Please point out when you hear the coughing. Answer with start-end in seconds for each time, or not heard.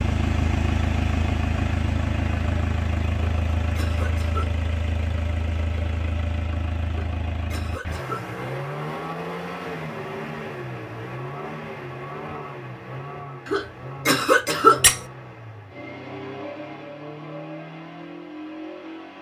3.1-4.5, 6.9-8.2, 13.4-14.8.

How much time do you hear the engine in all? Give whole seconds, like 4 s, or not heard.
19 s.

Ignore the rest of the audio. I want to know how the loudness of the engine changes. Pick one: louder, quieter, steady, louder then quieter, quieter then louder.
quieter.